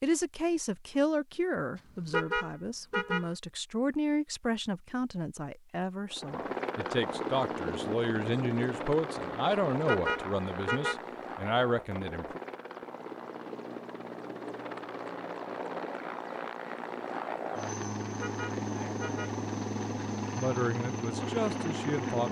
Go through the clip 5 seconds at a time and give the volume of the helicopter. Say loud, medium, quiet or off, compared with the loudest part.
off, loud, medium, loud, loud.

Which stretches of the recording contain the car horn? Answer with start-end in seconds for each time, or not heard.
2.1-3.3, 9.8-11.0, 18.2-19.4.